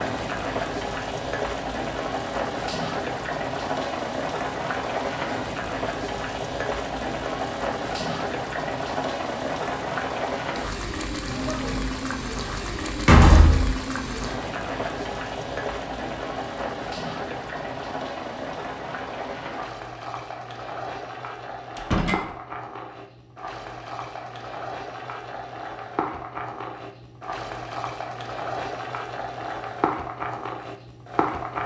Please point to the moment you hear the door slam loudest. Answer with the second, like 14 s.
13 s.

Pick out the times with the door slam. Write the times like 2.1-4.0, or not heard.
12.9-13.7, 21.8-22.2.